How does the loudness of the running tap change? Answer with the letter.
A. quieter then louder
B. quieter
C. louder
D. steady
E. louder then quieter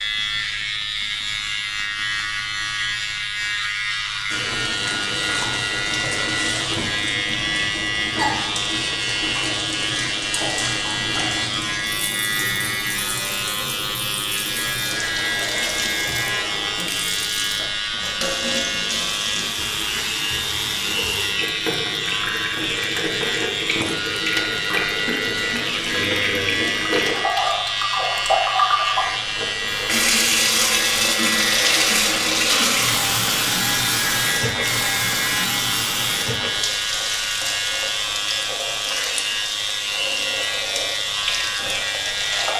E.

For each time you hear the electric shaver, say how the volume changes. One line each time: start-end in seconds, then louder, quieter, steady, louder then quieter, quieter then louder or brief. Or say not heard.
0.0-42.5 steady.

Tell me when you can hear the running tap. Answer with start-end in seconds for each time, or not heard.
4.2-42.5.